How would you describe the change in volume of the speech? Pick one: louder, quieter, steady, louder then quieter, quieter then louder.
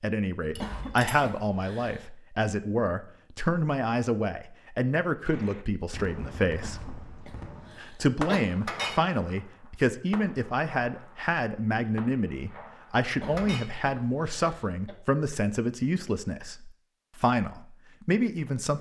steady.